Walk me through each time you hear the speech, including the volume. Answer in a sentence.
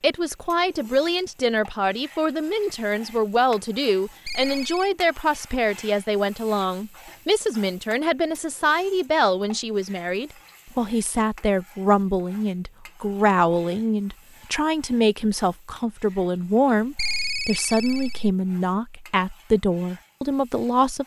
The speech can be heard from 0.0 to 21.0 s, at a steady volume.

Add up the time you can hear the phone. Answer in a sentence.
You can hear the phone for 2 seconds altogether.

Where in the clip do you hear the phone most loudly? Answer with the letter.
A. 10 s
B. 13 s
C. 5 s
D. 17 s
D.